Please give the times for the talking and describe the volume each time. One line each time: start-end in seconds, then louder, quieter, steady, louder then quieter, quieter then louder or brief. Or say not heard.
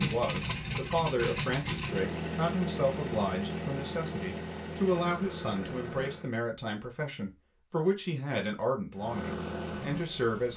0.0-10.5 steady.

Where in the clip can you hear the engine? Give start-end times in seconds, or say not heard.
0.0-6.3, 8.9-10.5.